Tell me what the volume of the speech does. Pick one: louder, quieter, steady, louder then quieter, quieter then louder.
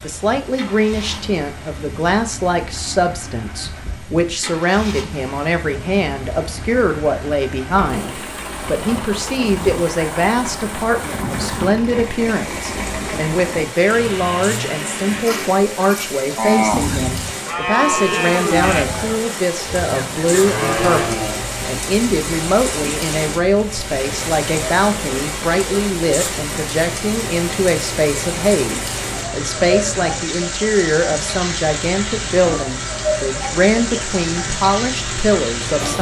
steady.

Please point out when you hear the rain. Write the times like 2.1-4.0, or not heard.
0.0-35.9.